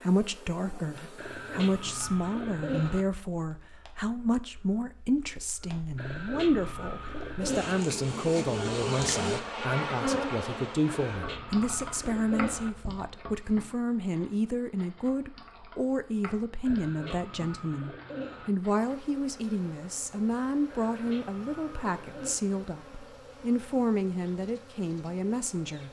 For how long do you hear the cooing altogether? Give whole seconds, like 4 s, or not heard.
9 s.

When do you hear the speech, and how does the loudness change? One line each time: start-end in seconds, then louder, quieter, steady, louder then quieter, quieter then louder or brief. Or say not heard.
0.0-25.8 steady.